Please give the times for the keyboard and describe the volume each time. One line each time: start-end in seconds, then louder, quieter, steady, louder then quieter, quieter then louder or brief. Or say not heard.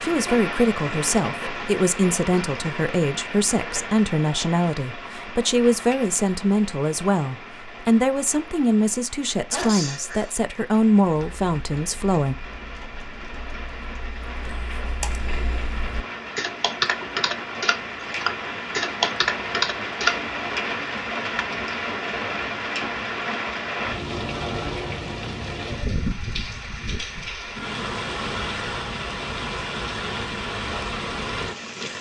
11.2-20.2 louder.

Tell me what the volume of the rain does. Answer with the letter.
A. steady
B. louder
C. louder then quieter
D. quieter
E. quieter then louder
E.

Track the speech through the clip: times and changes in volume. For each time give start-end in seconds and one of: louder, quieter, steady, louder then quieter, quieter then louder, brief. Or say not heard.
0.0-12.3 steady.